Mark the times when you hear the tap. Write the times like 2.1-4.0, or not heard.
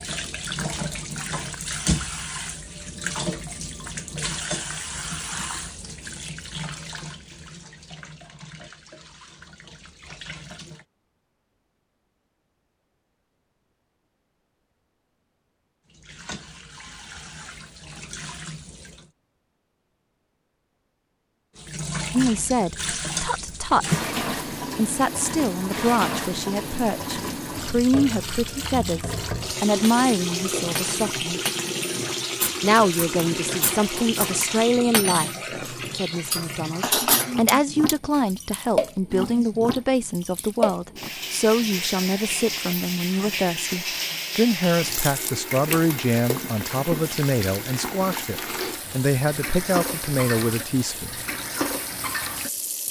0.0-10.8, 15.8-19.1, 21.6-52.8.